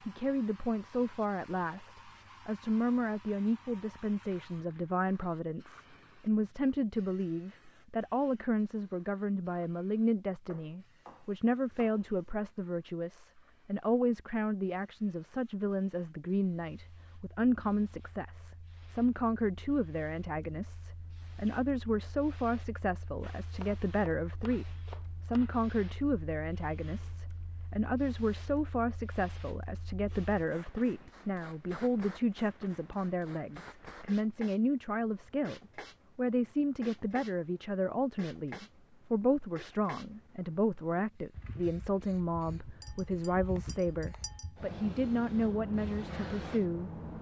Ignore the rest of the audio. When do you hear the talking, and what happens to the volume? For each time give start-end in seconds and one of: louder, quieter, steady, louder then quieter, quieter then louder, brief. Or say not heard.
0.1-47.0 steady.